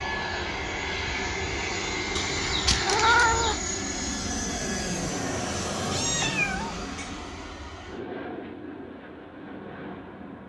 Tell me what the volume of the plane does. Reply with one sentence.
The volume of the plane goes down.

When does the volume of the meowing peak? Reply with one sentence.
The loudest moment of the meowing is at 3 seconds.